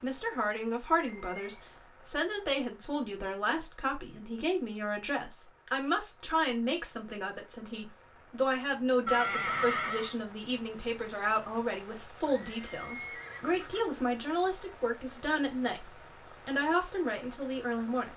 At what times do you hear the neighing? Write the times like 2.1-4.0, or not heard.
1.1-1.6, 9.1-10.2, 12.2-13.8.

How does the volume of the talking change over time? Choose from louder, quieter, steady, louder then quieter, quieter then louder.
steady.